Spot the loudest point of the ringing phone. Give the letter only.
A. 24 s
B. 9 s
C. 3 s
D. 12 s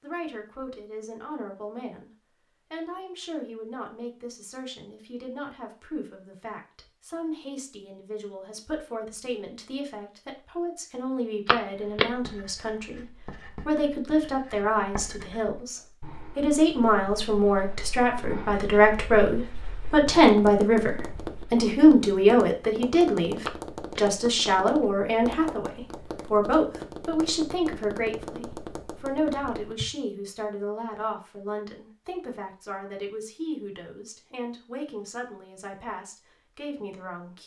D.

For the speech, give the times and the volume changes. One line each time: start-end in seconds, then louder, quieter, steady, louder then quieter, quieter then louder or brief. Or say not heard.
0.0-2.1 brief
2.7-37.4 louder then quieter.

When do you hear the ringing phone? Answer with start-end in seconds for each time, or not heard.
11.4-12.1, 23.4-24.1.